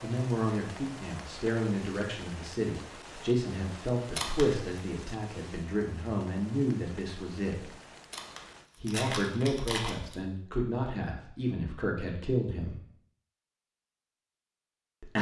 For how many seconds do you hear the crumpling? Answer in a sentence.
You can hear the crumpling for 3 seconds altogether.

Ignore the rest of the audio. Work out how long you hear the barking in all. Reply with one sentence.
The barking can't be heard in this clip.